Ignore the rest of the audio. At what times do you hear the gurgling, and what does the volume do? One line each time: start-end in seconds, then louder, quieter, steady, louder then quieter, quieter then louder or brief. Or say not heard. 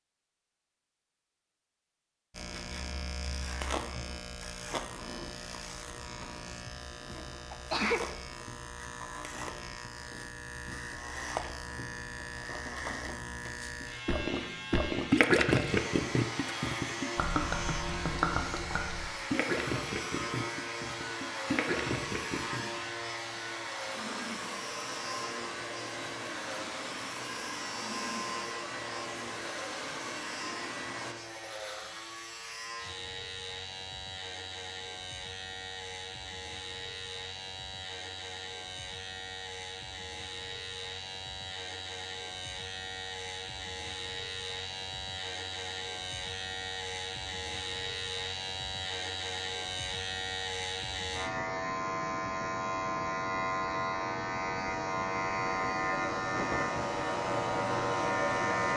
13.8-22.8 quieter.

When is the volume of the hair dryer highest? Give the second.
58 s.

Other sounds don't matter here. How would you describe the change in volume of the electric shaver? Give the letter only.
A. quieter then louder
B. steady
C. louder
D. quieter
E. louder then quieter
C.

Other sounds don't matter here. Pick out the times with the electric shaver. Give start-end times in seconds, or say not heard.
2.3-58.7.